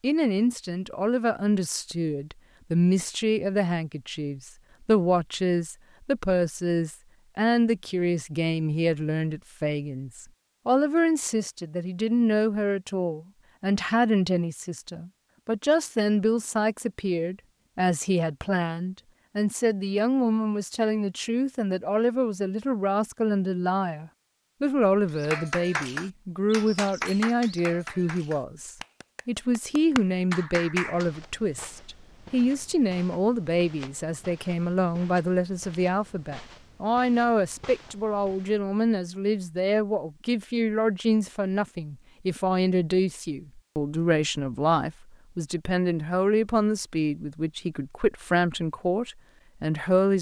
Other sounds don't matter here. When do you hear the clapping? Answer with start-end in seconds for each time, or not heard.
25.1-31.1.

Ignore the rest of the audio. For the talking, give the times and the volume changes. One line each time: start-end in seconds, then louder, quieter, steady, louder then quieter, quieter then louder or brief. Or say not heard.
0.0-50.1 steady.